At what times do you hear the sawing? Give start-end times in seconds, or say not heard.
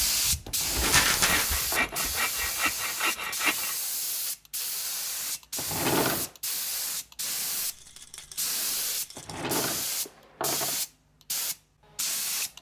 0.0-3.8.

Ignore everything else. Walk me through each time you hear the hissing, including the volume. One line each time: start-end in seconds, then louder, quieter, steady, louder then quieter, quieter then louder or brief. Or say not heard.
0.0-12.5 steady.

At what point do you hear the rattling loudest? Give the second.
1 s.